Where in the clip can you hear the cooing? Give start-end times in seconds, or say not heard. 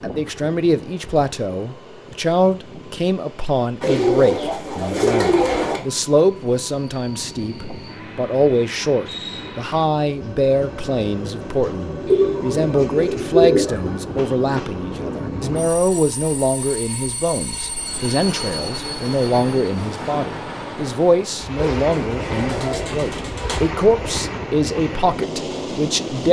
3.8-5.8, 12.1-13.9, 21.6-23.6.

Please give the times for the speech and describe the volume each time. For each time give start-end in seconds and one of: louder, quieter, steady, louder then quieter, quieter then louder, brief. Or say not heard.
0.0-26.2 steady.